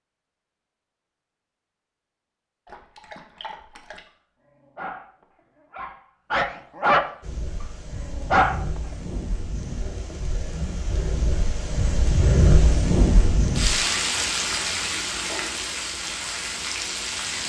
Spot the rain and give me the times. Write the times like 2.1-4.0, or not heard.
7.2-17.4.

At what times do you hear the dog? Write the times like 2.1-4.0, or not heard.
2.6-4.0, 4.6-7.2, 8.0-8.8.